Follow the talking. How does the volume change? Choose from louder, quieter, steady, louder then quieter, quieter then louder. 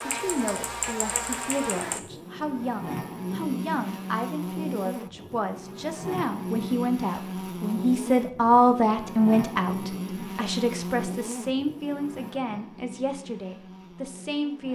louder then quieter.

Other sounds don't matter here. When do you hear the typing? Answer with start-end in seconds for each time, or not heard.
0.0-2.0.